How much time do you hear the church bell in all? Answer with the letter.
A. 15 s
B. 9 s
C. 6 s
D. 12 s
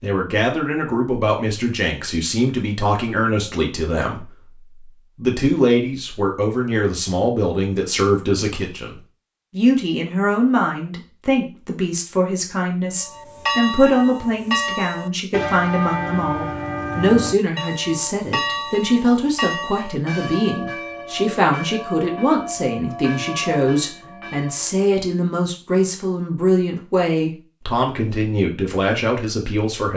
D.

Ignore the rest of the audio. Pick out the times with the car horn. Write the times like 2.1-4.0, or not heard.
not heard.